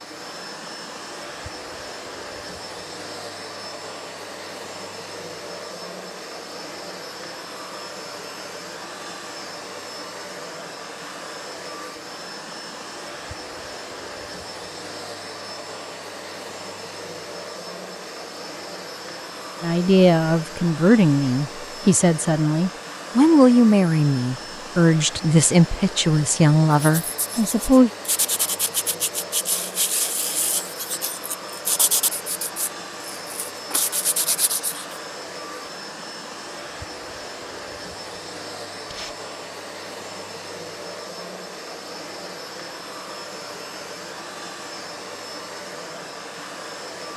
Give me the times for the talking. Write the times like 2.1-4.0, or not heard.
19.6-27.9.